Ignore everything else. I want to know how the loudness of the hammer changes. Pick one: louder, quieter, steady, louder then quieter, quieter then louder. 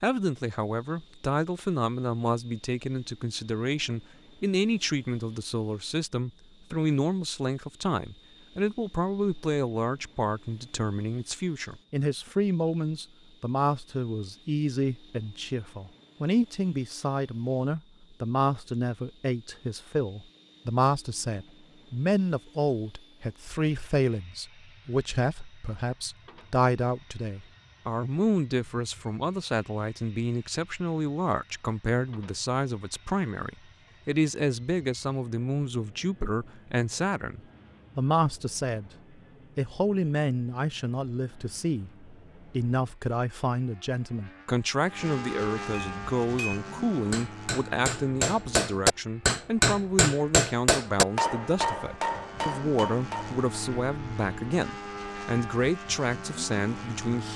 louder then quieter.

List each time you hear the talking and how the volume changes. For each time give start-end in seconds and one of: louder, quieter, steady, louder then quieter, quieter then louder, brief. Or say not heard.
0.0-38.9 steady
39.5-57.3 steady.